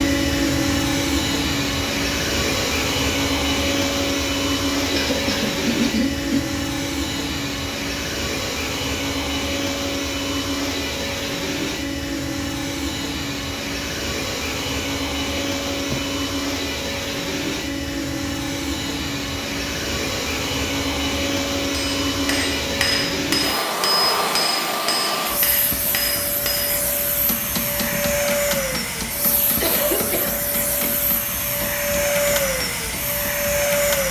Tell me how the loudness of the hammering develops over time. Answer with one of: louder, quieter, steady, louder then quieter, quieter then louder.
quieter.